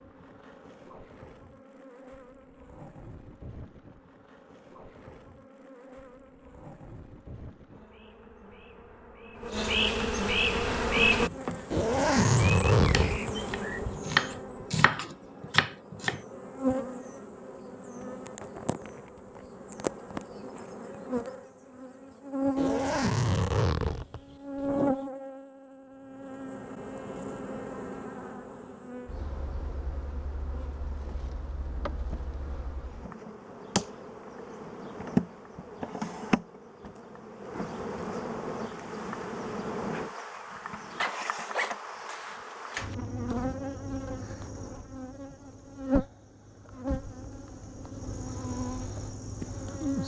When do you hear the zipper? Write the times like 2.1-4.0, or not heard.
11.7-13.9, 22.6-24.8, 41.0-43.0.